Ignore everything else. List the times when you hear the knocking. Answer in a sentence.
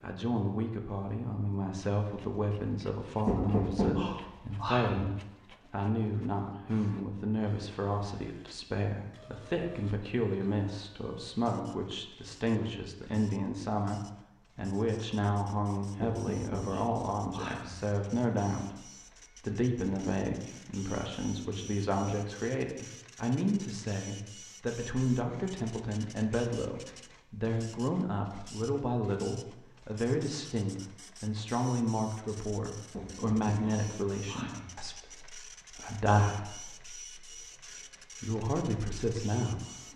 You can hear the knocking from 3.2 to 5.0 s, from 16.0 to 17.8 s and from 32.9 to 34.7 s.